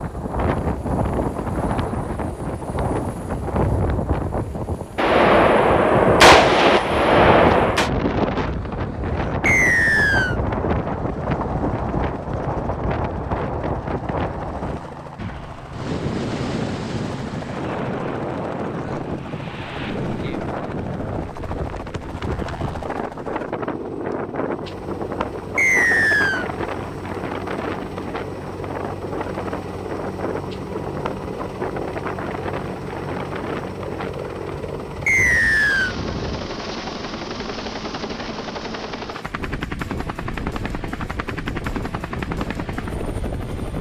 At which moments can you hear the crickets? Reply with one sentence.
The crickets can't be heard in this clip.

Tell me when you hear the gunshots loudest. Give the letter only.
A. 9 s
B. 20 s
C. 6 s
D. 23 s
C.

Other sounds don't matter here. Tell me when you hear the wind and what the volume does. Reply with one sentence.
You can hear the wind from 0.0 to 43.7 s, getting quieter.